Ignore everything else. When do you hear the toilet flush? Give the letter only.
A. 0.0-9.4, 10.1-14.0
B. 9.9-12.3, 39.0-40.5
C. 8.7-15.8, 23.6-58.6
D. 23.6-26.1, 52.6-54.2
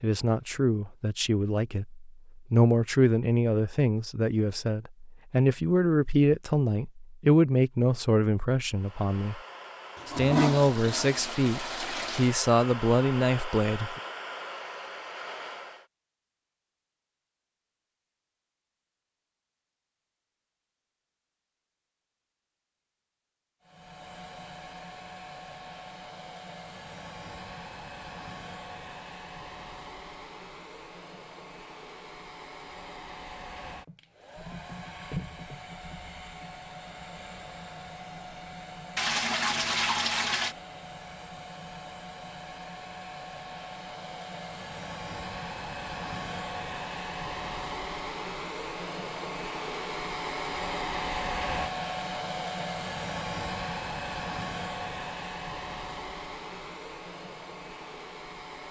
B.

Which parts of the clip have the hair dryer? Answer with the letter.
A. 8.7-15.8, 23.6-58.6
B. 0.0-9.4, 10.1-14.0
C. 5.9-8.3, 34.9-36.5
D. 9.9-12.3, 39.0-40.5
A.